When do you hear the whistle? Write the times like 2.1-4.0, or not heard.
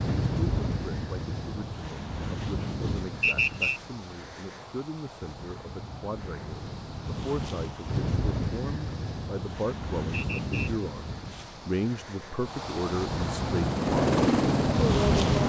3.2-3.8, 10.1-10.7.